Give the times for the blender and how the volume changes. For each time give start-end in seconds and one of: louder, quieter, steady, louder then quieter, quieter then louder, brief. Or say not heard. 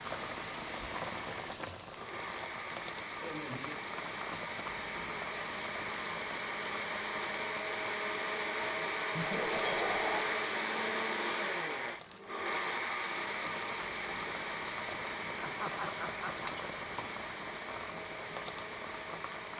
0.0-19.5 louder then quieter.